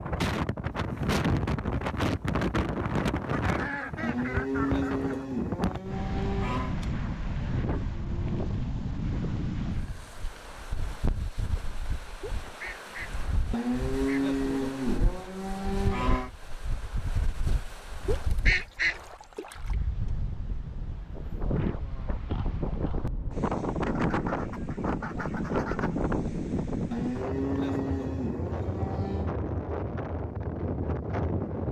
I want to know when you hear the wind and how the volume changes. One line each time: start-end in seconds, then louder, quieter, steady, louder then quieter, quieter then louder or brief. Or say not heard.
0.0-31.6 quieter then louder.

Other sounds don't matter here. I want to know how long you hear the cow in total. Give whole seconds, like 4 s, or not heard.
8 s.